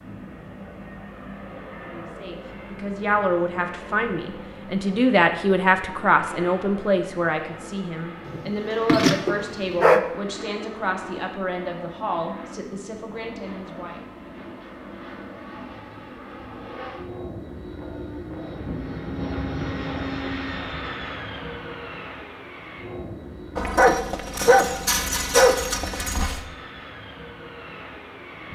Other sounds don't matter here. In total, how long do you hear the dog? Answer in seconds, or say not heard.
5 s.